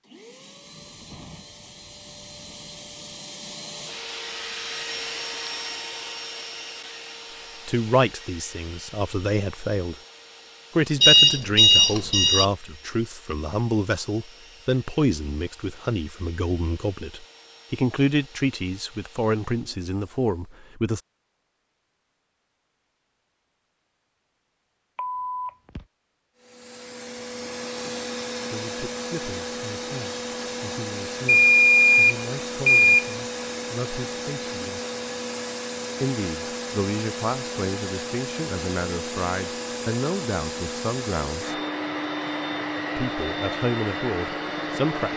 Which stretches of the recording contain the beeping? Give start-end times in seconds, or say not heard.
11.0-12.4, 24.9-25.9, 31.2-33.1.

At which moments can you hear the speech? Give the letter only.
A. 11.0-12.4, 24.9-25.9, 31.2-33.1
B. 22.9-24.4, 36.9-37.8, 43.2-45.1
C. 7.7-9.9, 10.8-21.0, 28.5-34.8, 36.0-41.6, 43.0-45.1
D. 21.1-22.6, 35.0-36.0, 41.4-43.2
C.